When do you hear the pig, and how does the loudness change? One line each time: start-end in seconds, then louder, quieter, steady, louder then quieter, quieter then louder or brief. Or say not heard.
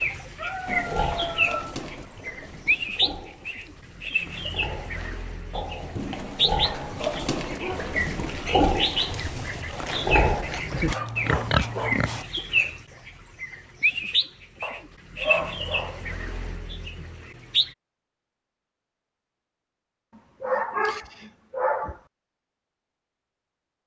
0.7-12.2 quieter then louder.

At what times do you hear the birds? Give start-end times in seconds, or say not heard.
0.0-17.7.